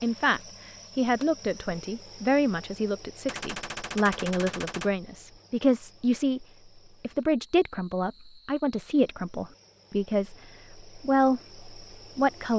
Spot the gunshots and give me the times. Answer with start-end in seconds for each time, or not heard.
3.2-4.9.